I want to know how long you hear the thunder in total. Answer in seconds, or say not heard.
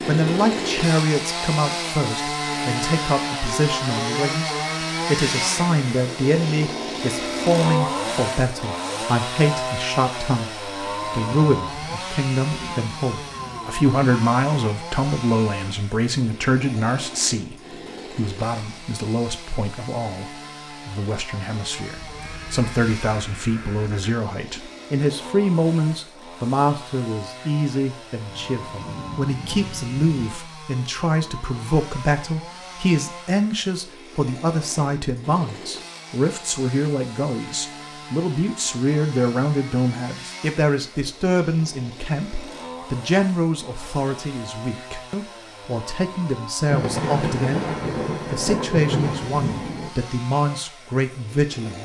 8 s.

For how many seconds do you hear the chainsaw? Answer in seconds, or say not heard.
52 s.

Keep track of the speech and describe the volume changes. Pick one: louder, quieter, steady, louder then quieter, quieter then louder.
steady.